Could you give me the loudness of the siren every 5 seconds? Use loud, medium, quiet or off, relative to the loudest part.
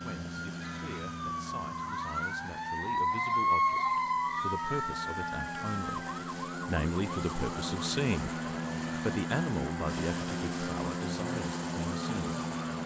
loud, medium, quiet.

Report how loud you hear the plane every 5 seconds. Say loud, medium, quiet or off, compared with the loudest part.
medium, loud, loud.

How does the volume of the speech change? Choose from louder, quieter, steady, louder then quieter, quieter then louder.
louder then quieter.